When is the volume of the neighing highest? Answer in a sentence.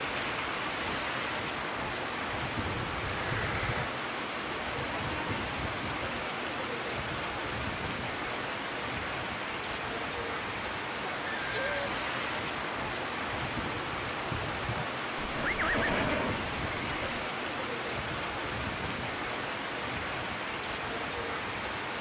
The volume of the neighing peaks at 16 seconds.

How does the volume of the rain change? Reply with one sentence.
The loudness of the rain stays about the same.